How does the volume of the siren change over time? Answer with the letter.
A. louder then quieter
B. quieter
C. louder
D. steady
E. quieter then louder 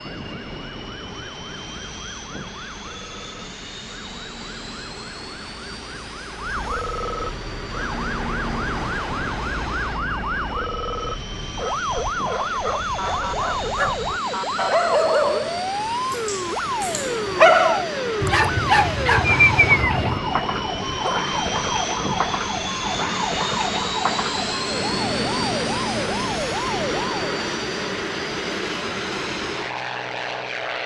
C.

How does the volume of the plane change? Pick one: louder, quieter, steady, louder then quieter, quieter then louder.
louder.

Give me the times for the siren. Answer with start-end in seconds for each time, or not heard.
0.0-27.4.